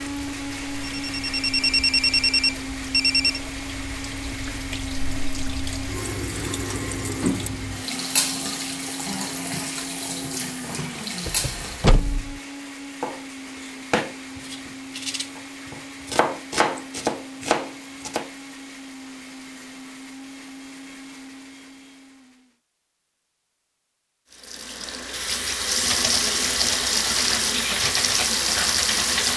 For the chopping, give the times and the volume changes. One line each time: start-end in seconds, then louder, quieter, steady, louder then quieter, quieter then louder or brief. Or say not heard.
13.0-18.3 quieter then louder.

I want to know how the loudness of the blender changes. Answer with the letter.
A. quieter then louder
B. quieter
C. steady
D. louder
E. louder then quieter
B.